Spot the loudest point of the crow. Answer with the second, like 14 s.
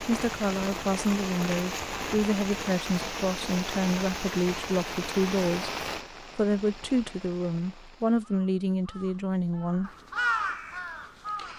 10 s.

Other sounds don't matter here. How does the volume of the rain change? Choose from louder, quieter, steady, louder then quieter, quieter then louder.
quieter.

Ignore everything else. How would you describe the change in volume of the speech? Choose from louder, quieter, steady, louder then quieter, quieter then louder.
steady.